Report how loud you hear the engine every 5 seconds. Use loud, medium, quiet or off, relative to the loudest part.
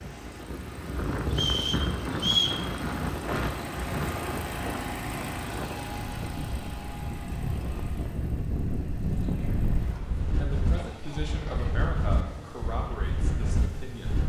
loud, loud, medium.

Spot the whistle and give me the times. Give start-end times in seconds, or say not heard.
1.3-2.6.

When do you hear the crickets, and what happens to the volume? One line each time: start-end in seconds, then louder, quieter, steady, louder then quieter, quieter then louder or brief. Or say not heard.
not heard.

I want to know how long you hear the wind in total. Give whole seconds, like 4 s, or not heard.
14 s.